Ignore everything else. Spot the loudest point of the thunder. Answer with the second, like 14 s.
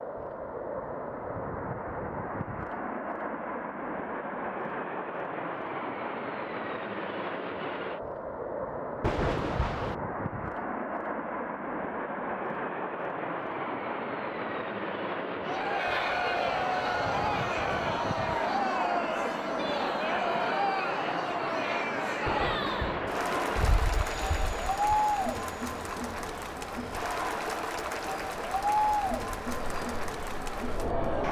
9 s.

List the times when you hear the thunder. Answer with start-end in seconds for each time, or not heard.
9.0-9.9, 22.2-23.2.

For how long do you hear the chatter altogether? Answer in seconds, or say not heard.
16 s.